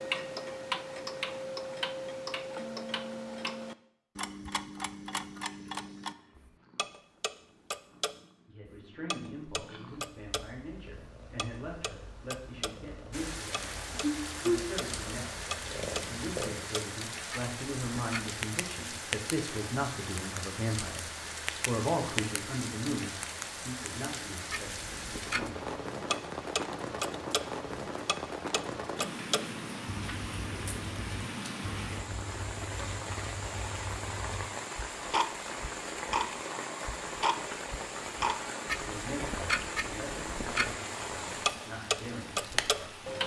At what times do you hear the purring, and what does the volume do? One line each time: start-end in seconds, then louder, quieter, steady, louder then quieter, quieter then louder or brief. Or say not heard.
5.5-16.7 louder.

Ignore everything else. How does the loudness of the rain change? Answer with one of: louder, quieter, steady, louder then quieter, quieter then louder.
steady.